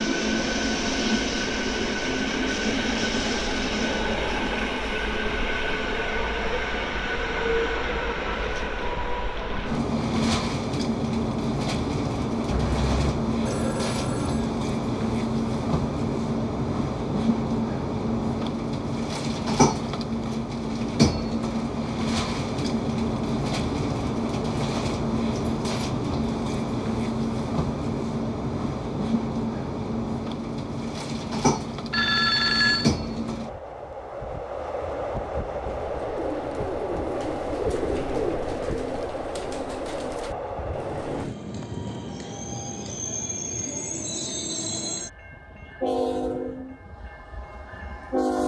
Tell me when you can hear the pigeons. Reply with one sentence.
The pigeons can be heard from 35.6 to 41.4 s.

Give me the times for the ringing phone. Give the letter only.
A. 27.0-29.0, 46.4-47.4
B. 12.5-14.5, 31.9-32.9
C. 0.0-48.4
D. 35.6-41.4
B.